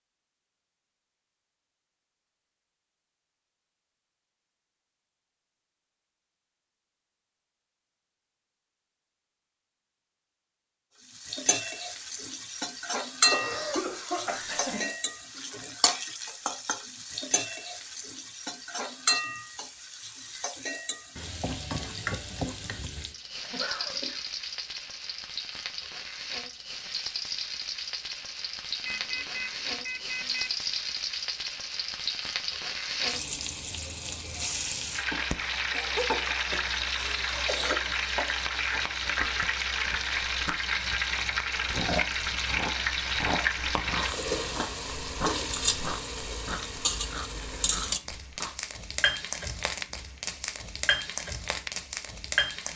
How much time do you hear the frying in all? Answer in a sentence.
You can hear the frying for 42 seconds altogether.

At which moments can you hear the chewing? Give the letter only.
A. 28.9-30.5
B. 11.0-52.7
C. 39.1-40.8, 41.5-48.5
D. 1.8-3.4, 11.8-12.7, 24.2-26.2
C.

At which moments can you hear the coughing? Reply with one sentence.
You can hear the coughing from 13.3 to 14.9 s, from 23.4 to 24.2 s and from 35.8 to 37.8 s.